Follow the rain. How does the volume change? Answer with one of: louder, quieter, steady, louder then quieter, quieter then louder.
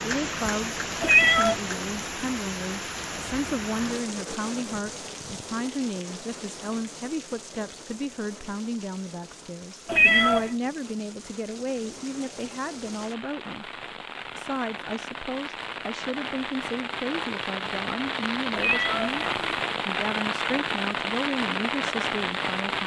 quieter then louder.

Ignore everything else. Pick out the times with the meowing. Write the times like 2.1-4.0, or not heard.
1.0-1.6, 9.8-10.5, 18.6-19.6.